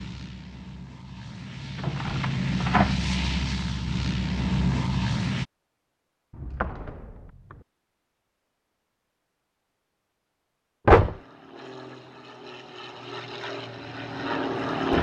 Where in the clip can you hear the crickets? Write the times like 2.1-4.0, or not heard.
not heard.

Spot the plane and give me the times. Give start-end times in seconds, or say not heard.
0.0-5.5, 10.9-14.9.